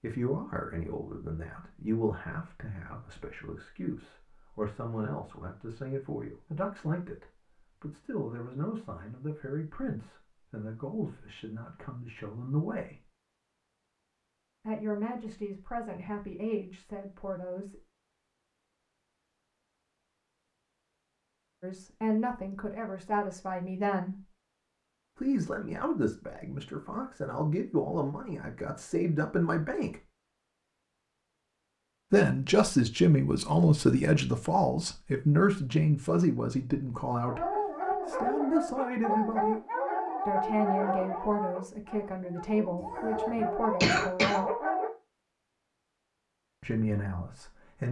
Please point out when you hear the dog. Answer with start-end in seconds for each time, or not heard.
37.2-44.9.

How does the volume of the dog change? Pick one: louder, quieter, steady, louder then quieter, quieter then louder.
quieter then louder.